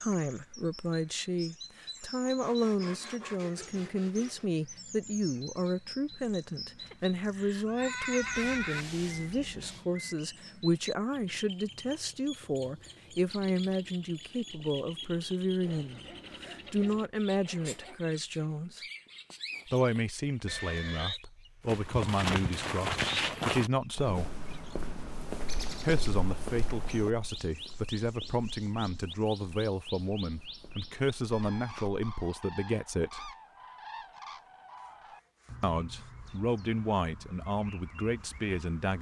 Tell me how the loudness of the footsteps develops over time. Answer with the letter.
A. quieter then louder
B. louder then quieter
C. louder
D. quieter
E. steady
D.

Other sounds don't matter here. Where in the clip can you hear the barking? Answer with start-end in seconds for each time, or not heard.
not heard.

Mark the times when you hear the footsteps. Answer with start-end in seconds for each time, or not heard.
21.6-32.5.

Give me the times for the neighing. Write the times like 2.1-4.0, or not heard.
6.8-8.8, 20.4-21.2.